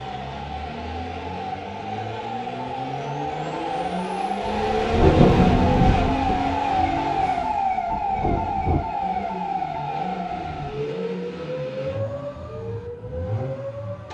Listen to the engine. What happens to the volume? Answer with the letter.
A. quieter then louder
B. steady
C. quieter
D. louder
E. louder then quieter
E.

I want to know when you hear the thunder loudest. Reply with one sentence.
The loudest moment of the thunder is at 5 seconds.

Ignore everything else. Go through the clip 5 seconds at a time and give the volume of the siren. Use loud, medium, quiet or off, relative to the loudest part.
medium, loud, medium.